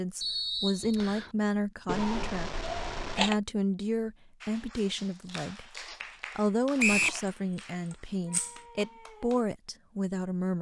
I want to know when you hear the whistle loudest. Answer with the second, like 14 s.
7 s.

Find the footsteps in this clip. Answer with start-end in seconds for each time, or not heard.
not heard.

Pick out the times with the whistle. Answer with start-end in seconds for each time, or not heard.
0.2-1.3, 6.8-7.2.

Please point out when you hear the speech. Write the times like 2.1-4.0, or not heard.
0.0-2.5, 3.1-5.7, 6.3-10.5.